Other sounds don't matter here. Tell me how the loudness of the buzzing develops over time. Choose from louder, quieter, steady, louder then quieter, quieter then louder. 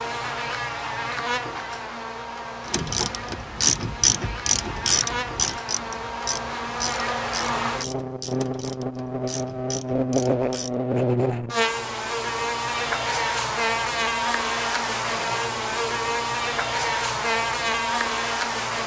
louder.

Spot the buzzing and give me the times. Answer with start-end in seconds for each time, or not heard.
0.0-18.8.